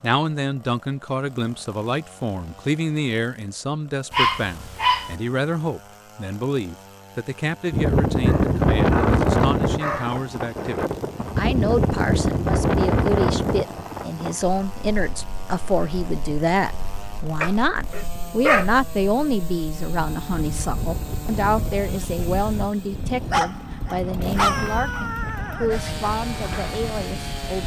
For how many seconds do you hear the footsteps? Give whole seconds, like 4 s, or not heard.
not heard.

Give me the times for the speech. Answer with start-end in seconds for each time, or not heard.
0.0-27.6.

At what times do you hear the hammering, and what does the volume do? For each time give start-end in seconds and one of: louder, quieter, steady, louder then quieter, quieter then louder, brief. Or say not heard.
not heard.